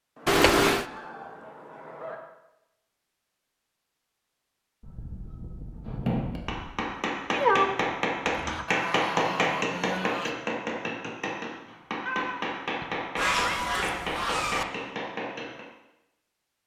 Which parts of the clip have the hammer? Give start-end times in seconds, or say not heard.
5.8-15.7.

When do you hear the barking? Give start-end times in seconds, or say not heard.
not heard.